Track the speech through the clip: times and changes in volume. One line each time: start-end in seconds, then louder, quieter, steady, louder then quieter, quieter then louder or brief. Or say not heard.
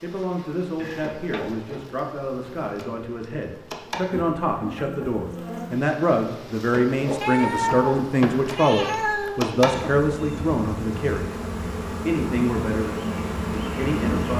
0.0-11.3 louder
12.1-14.3 brief.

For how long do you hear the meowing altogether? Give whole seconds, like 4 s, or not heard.
2 s.